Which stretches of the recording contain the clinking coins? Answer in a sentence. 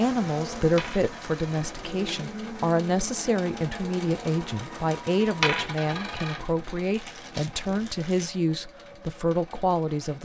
The clinking coins can be heard from 0.8 to 2.2 s and from 5.4 to 6.5 s.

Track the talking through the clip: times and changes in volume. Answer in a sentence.
The talking can be heard from 0.0 to 10.2 s, at a steady volume.